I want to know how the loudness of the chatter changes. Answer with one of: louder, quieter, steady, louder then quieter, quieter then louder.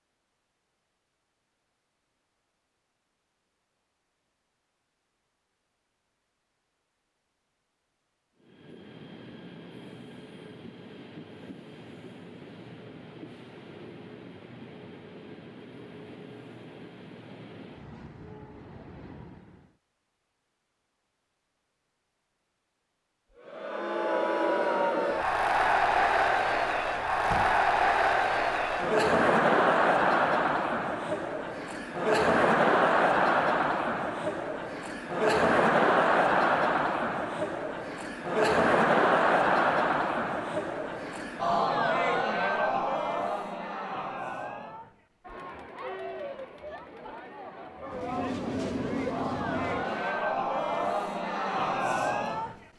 quieter.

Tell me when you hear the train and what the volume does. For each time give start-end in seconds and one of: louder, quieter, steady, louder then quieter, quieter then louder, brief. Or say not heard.
8.3-19.8 steady
47.9-50.3 brief.